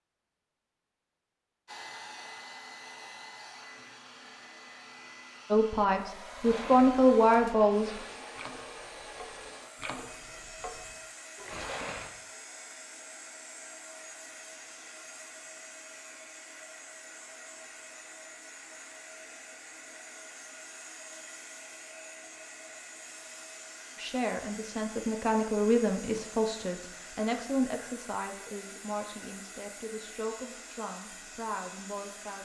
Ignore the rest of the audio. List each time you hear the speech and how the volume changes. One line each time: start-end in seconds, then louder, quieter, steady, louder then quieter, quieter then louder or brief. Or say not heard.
5.5-7.9 brief
23.9-32.4 quieter.